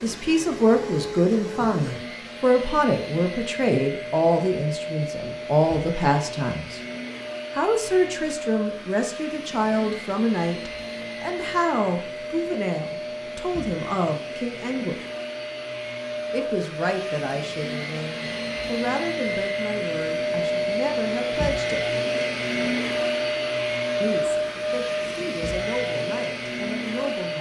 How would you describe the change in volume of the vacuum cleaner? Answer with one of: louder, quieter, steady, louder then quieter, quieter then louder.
louder.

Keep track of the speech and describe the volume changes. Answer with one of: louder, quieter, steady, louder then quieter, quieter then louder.
quieter.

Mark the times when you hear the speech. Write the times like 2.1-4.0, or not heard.
0.0-6.8, 7.5-15.0, 16.3-21.9, 24.0-27.3.